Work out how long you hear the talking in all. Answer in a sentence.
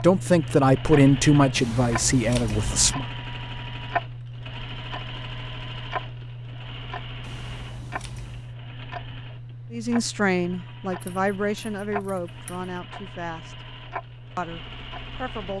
The talking can be heard for 8 seconds in total.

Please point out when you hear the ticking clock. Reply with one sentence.
The ticking clock can be heard from 0.0 to 15.5 s.